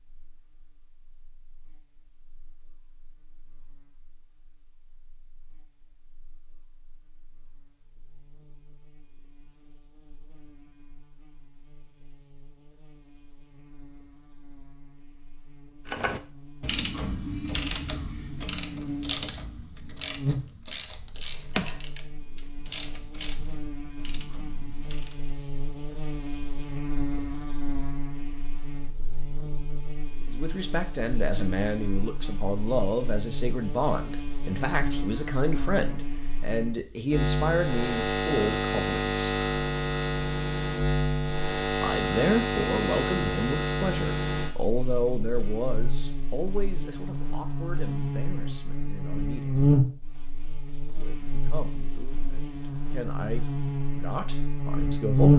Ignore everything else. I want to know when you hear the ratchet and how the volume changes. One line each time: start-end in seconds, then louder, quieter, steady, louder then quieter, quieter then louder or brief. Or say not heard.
15.8-25.2 quieter.